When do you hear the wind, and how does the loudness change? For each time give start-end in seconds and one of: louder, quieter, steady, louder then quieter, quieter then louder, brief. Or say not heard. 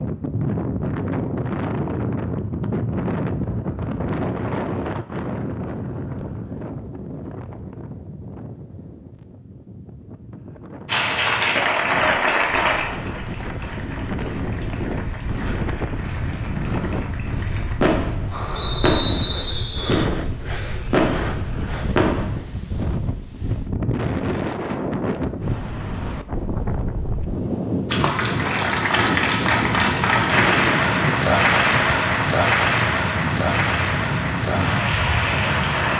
0.0-35.9 quieter then louder.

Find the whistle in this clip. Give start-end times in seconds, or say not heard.
18.6-19.9.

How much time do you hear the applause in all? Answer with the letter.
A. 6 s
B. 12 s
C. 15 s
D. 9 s
C.